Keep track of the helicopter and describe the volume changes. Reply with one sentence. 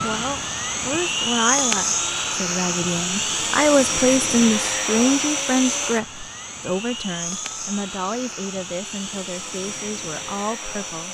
The loudness of the helicopter goes down.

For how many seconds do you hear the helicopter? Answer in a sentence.
The helicopter can be heard for 11 seconds in total.